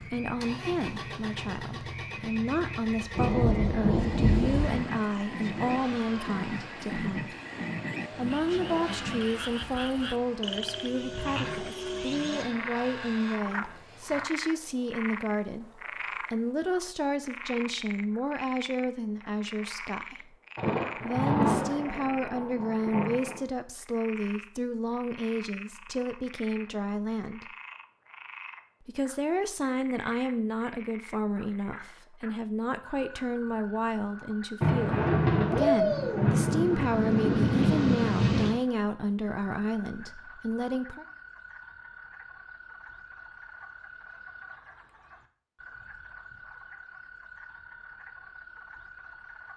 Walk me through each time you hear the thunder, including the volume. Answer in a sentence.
You can hear the thunder briefly from 3.1 to 4.8 s; briefly from 20.6 to 23.4 s; and from 34.6 to 38.6 s, at a steady volume.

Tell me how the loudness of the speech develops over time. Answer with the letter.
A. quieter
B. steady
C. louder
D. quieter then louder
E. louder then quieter
B.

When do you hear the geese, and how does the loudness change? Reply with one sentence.
The geese can't be heard in this clip.